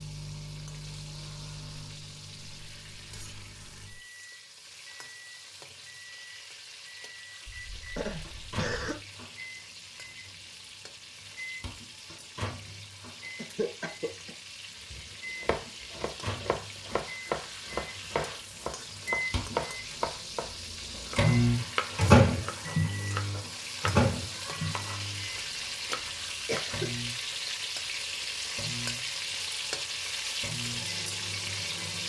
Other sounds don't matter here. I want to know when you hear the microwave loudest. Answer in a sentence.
The loudest moment of the microwave is at 22 seconds.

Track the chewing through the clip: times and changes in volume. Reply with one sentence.
The chewing can't be heard in this clip.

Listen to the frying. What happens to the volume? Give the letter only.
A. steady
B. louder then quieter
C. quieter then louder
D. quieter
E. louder
E.